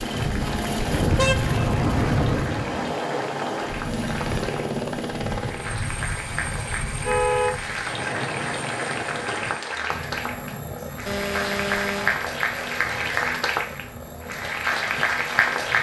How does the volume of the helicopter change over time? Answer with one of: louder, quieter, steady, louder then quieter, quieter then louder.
quieter.